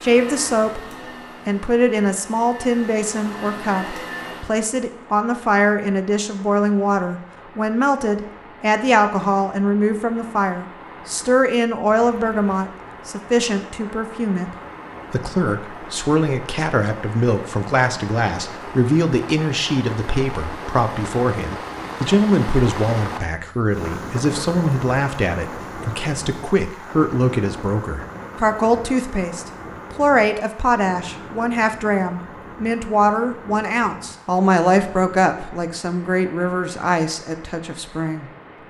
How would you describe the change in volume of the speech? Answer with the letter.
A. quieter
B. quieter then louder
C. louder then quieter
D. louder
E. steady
E.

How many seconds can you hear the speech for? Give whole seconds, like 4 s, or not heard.
38 s.